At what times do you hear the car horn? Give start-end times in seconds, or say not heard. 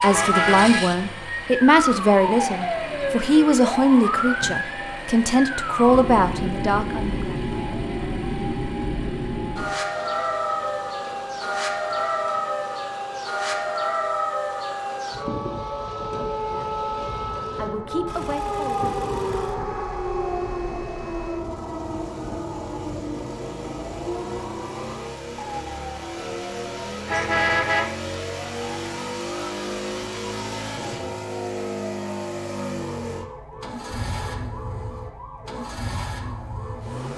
0.1-0.8, 27.1-27.9.